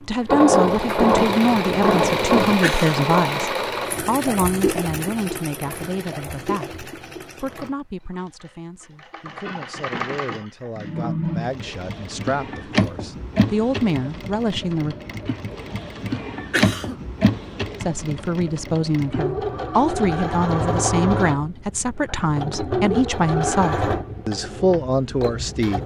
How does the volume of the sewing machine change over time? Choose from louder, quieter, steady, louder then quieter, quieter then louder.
quieter then louder.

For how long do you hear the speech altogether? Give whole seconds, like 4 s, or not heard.
23 s.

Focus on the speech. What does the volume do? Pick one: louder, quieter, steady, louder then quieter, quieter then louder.
quieter then louder.